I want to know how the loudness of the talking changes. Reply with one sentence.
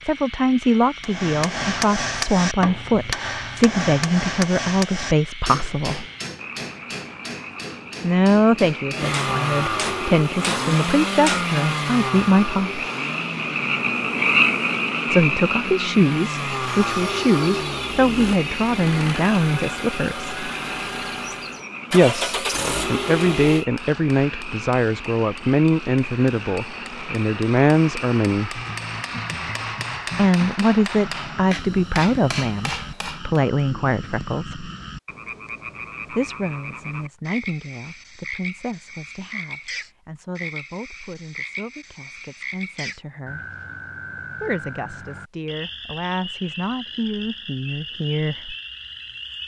The loudness of the talking goes down.